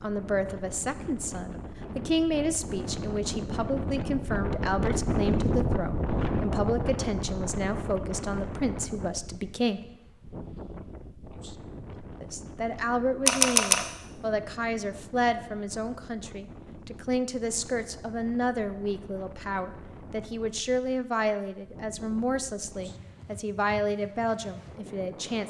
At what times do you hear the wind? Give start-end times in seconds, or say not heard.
0.0-25.4.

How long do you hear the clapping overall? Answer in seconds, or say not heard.
not heard.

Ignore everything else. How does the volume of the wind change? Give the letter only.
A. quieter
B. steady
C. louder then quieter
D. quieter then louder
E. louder
A.